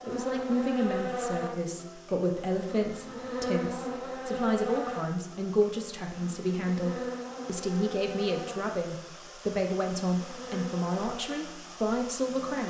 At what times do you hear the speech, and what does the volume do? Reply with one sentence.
The speech can be heard from 0.0 to 12.6 s, at a steady volume.